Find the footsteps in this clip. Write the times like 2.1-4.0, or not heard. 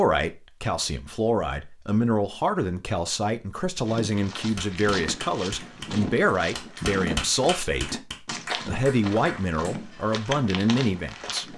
3.9-11.5.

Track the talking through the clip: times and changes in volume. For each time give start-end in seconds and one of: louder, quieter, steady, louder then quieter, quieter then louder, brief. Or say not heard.
0.0-11.5 steady.